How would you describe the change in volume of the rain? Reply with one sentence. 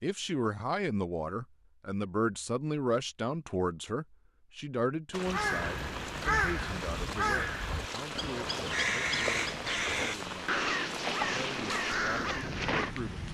The volume of the rain stays about the same.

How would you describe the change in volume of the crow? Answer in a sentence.
The volume of the crow stays about the same.